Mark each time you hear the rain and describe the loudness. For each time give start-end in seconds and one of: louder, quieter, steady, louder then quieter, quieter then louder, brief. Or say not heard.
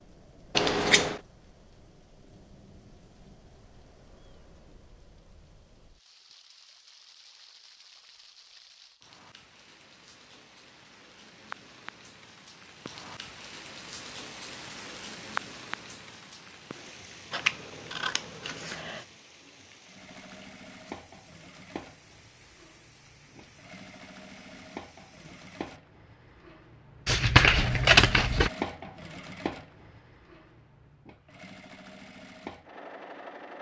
0.0-25.6 louder then quieter.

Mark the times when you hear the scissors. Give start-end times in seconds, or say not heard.
0.6-1.2, 17.3-19.0, 27.1-28.5.